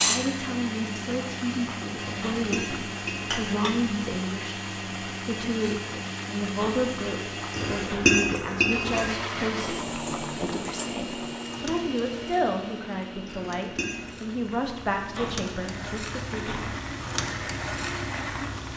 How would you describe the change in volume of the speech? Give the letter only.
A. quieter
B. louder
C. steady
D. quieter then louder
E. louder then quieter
C.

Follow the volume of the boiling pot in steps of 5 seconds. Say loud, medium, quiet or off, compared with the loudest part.
loud, medium, medium, loud.